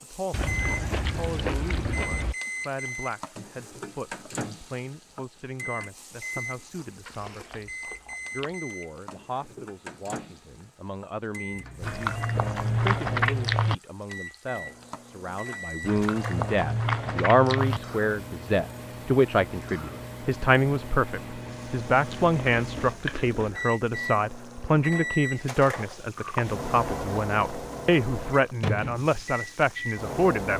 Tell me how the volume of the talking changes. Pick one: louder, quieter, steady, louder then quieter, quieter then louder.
louder.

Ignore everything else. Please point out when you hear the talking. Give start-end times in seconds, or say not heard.
0.0-30.5.